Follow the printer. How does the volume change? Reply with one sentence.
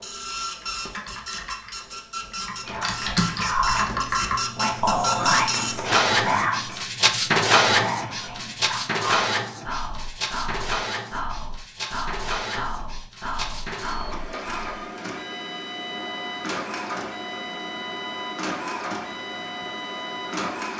The loudness of the printer goes up, then down.